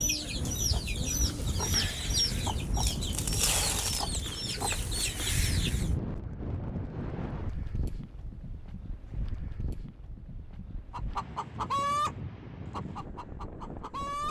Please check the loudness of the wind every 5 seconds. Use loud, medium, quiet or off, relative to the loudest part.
loud, loud, medium.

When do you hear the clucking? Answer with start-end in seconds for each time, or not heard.
0.0-5.9, 10.9-12.1, 12.7-14.2.